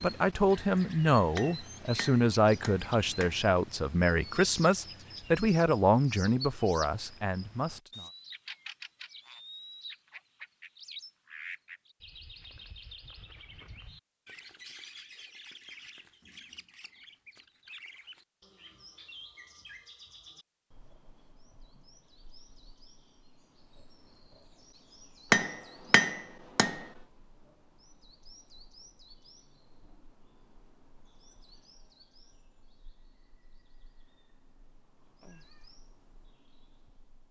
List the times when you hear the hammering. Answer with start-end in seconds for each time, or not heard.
1.4-3.4, 25.3-26.9.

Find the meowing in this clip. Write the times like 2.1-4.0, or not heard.
35.2-35.8.